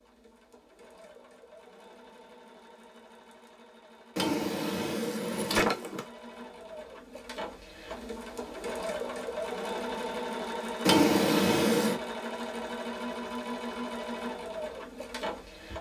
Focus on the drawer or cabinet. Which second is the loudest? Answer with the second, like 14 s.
11 s.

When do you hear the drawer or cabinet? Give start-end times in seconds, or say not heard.
4.2-6.0, 10.8-11.9.